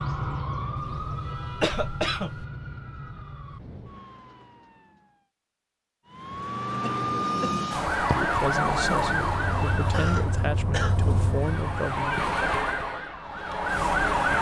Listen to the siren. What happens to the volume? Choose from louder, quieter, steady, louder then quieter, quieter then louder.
quieter then louder.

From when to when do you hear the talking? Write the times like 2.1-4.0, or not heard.
8.0-12.2.